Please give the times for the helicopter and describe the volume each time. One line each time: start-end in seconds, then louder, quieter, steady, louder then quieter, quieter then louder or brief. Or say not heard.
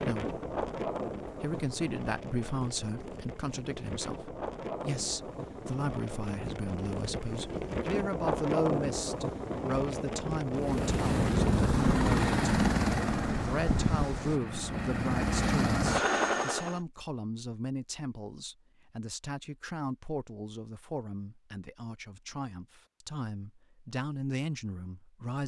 10.6-16.8 quieter then louder.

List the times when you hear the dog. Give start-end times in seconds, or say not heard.
not heard.